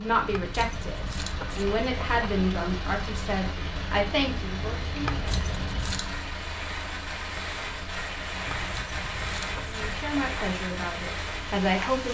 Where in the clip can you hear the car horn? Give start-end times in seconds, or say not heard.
not heard.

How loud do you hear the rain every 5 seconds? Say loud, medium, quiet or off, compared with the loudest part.
medium, loud, loud.